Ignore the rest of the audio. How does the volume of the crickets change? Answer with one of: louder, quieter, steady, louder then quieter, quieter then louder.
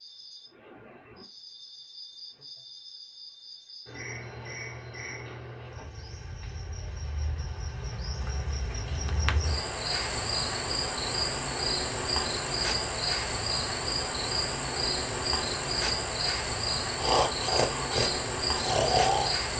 louder.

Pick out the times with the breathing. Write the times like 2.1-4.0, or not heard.
17.0-19.4.